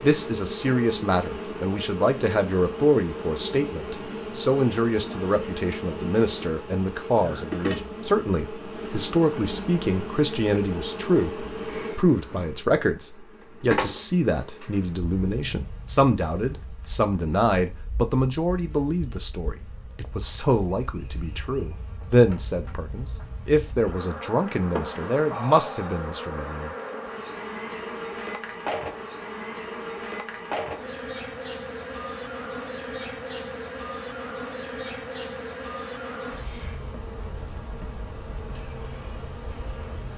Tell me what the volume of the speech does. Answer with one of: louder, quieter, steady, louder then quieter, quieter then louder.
steady.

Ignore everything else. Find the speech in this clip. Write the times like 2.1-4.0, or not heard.
0.0-26.7.